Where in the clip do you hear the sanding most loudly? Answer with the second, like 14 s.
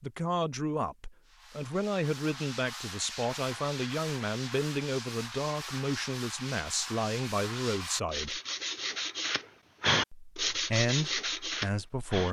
10 s.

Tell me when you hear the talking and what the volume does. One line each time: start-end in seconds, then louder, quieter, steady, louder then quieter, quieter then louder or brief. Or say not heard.
0.0-8.4 steady
10.1-12.2 brief.